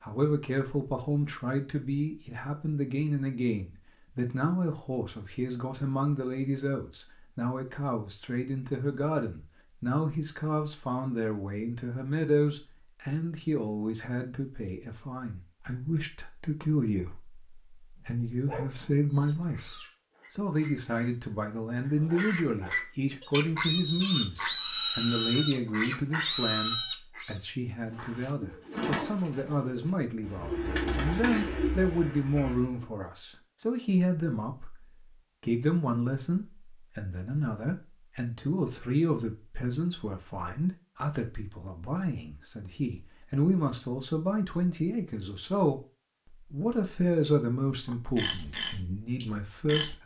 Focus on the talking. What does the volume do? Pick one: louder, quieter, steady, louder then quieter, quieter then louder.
steady.